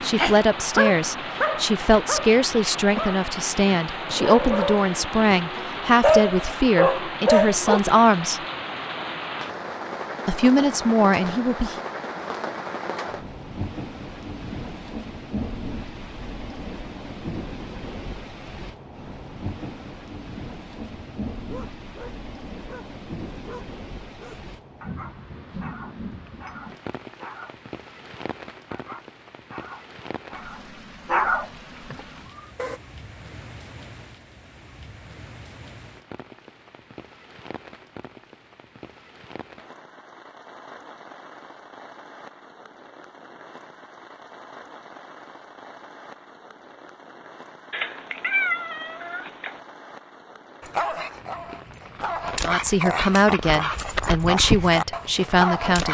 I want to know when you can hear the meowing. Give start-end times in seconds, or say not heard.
47.7-49.5.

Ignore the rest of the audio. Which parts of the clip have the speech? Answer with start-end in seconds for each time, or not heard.
0.0-8.4, 10.2-11.8, 52.4-55.8.